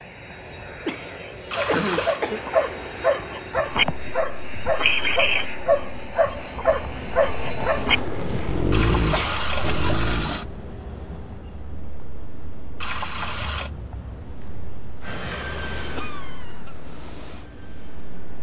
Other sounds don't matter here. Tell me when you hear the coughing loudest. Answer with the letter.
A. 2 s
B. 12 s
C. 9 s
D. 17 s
A.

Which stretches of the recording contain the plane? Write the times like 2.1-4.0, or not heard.
0.0-9.8, 15.0-18.3.